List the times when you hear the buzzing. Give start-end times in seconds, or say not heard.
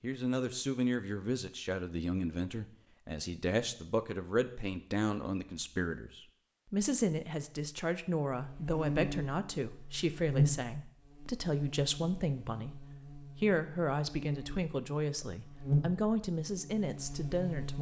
8.3-17.7.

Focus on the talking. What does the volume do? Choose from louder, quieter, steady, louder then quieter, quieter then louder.
steady.